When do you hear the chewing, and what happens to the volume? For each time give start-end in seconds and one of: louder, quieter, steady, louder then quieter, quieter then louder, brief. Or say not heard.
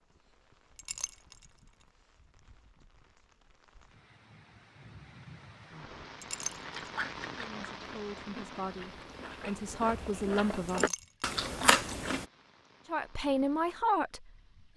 6.5-12.2 quieter then louder.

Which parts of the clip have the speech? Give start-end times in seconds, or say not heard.
7.3-10.9, 12.8-14.7.